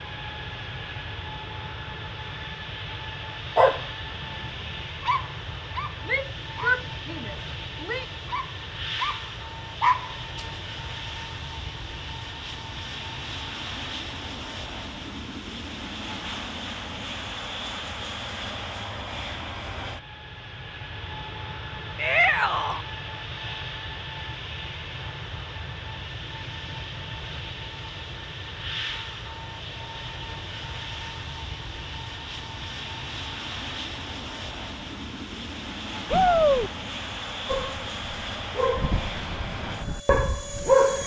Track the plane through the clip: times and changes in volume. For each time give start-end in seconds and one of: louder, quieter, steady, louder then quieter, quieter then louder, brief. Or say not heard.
0.0-41.0 steady.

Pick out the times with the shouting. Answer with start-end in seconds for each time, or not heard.
6.0-8.1, 21.9-22.9, 36.1-36.7.